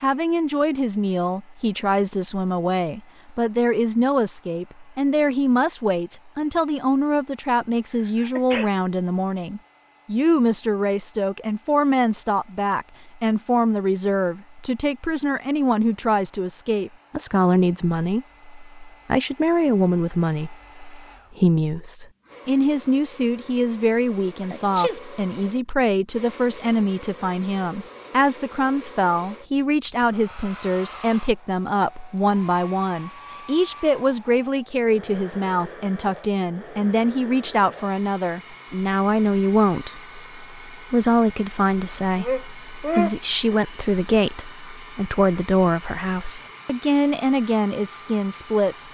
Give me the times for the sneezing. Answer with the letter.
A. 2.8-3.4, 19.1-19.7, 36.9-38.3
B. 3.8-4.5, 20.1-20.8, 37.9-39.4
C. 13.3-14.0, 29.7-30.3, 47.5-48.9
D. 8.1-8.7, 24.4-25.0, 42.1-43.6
D.